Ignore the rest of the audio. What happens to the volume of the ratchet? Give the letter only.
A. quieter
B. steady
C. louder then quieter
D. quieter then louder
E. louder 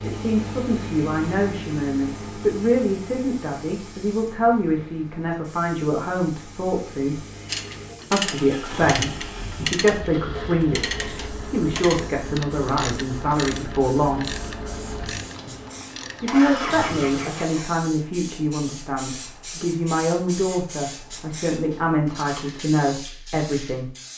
A.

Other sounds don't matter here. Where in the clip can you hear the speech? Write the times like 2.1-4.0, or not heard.
0.0-7.2, 8.1-14.3, 16.2-23.9.